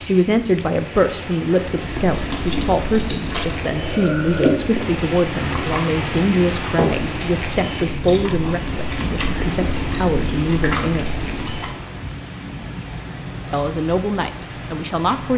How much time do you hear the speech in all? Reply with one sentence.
You can hear the speech for 13 seconds altogether.